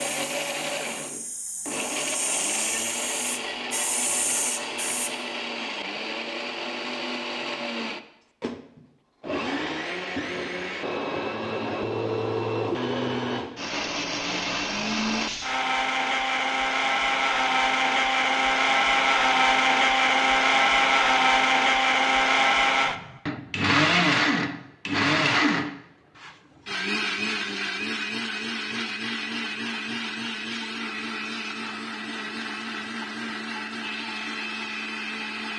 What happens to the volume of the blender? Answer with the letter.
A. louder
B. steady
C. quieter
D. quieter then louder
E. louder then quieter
E.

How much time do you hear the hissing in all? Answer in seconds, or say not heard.
5 s.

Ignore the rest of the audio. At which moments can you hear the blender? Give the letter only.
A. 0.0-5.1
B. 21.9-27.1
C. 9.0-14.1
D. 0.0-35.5
D.